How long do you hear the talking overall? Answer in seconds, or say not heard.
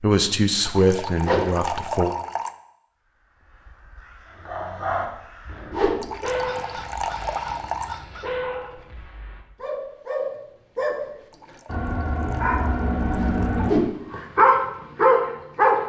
2 s.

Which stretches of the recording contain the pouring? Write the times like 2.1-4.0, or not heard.
0.7-2.5, 6.0-8.0, 11.3-13.8.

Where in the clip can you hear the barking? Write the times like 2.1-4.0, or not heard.
4.3-15.8.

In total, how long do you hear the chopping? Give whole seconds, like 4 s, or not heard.
not heard.